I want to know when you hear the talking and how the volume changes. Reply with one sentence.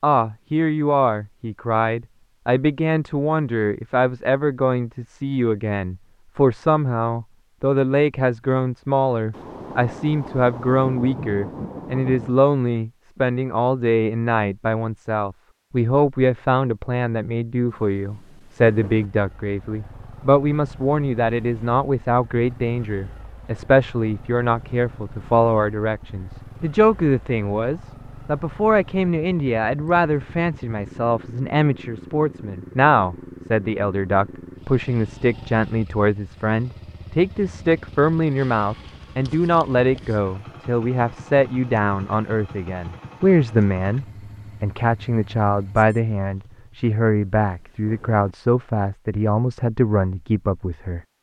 You can hear the talking from 0.0 to 51.0 s, at a steady volume.